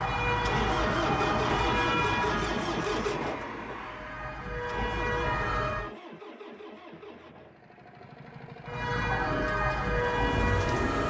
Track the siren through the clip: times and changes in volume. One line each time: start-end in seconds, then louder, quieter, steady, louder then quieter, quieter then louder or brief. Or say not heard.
0.0-6.0 quieter then louder
8.7-11.0 brief.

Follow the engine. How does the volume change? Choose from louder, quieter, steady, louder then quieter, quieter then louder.
quieter then louder.